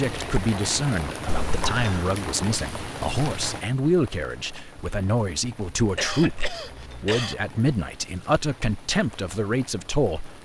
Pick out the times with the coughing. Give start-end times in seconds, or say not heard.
1.2-2.1, 6.0-7.3.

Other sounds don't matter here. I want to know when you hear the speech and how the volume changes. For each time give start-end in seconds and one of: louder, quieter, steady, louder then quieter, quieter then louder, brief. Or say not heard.
0.0-10.4 steady.